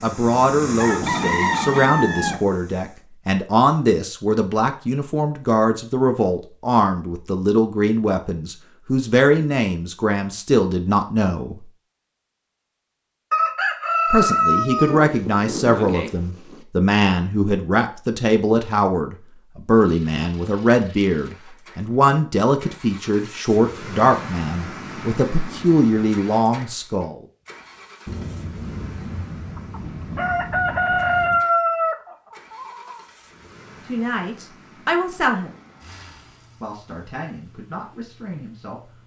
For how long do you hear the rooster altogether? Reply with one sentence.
The rooster can be heard for 7 seconds in total.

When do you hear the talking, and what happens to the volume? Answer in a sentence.
The talking can be heard from 0.0 to 11.7 s, at a steady volume; from 14.1 to 27.2 s, at a steady volume; briefly from 33.9 to 35.5 s; and briefly from 36.6 to 39.0 s.